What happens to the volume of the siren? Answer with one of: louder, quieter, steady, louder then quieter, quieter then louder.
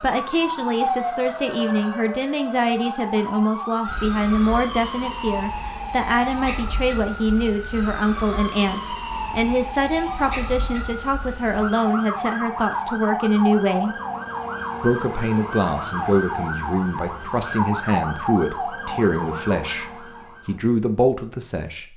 steady.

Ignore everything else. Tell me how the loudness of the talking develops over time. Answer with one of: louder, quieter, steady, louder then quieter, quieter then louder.
steady.